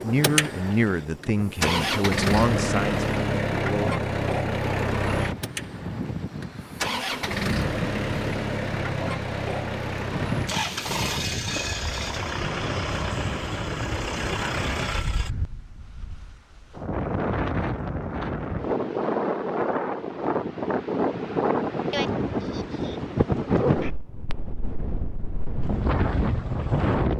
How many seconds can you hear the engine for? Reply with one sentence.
The engine can be heard for 15 seconds in total.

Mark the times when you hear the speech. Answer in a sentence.
You can hear the speech from 0.0 to 4.0 s.